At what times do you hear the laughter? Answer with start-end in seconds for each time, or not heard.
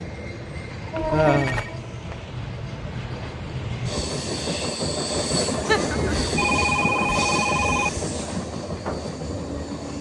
1.1-1.6, 5.7-6.3.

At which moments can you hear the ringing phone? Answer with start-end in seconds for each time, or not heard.
0.9-1.8, 6.3-7.9.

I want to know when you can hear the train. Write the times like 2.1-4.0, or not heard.
0.0-9.9.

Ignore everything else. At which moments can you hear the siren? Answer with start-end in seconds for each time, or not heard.
not heard.